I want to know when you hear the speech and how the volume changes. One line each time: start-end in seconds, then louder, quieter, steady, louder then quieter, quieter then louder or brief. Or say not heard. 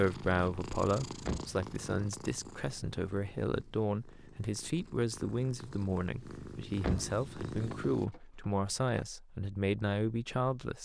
0.0-10.7 steady.